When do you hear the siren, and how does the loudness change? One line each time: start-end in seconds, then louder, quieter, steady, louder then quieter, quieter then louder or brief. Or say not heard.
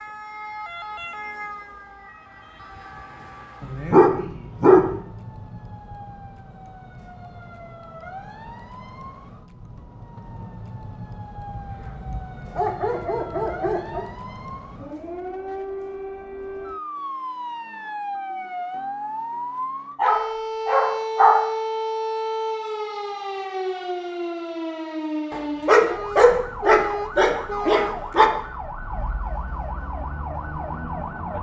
0.0-31.3 louder.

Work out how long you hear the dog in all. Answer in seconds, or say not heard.
8 s.